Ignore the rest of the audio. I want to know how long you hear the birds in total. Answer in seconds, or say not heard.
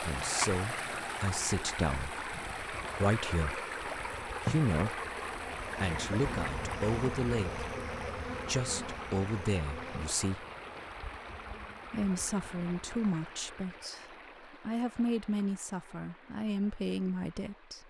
not heard.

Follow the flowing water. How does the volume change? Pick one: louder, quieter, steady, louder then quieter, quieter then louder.
quieter.